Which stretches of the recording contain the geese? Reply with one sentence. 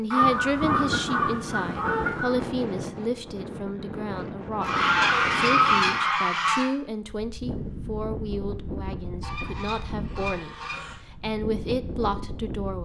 The geese can be heard from 0.1 to 2.4 s, from 4.6 to 6.7 s and from 9.2 to 10.9 s.